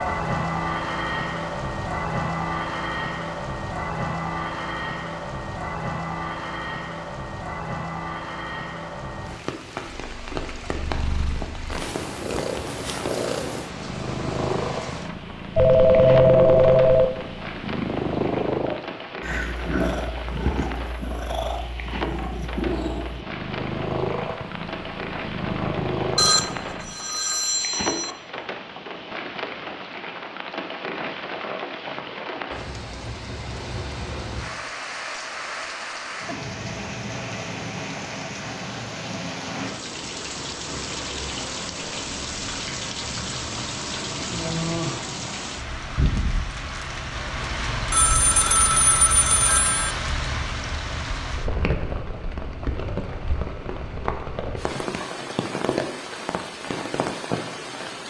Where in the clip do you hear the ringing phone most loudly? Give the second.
16 s.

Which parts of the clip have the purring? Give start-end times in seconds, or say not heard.
9.5-26.9.